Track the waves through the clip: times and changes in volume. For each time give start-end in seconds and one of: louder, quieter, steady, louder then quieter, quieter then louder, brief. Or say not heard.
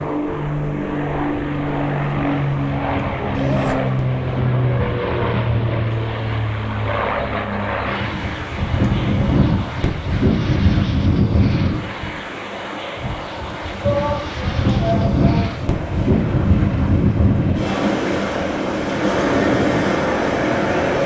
0.0-21.0 louder.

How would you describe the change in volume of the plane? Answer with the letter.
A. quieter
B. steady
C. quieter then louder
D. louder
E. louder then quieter
A.